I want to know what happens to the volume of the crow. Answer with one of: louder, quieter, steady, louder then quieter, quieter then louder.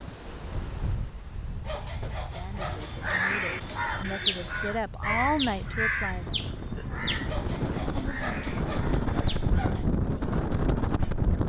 quieter.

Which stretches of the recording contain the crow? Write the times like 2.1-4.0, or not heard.
2.5-9.8.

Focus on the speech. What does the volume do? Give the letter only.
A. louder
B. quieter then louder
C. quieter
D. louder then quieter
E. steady
A.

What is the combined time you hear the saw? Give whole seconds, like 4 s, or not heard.
4 s.